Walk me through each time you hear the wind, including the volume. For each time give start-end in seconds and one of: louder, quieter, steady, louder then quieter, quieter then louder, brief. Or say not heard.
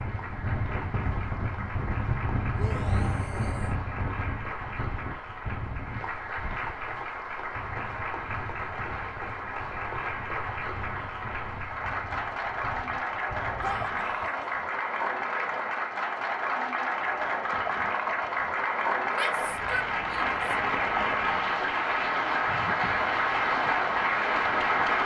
0.0-14.1 quieter.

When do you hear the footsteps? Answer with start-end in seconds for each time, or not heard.
not heard.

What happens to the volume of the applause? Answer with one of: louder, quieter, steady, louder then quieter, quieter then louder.
louder.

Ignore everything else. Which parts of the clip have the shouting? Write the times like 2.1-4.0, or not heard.
2.5-3.8, 13.6-14.5, 19.1-20.8.